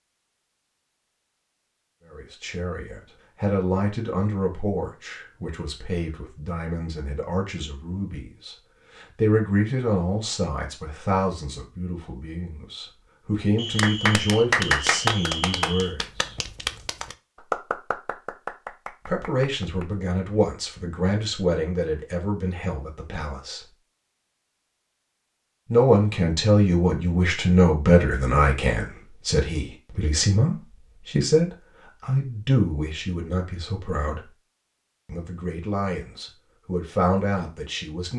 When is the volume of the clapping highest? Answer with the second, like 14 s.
15 s.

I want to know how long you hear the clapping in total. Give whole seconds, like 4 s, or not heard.
6 s.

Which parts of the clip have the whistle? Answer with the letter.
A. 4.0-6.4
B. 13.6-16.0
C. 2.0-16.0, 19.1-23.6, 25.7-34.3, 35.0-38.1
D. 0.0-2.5
B.